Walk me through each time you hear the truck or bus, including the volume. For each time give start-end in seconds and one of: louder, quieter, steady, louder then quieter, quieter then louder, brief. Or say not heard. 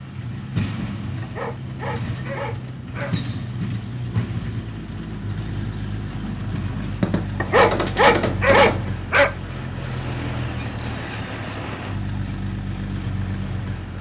0.0-13.9 steady.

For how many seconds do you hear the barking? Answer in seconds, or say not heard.
4 s.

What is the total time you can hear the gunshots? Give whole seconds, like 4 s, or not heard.
2 s.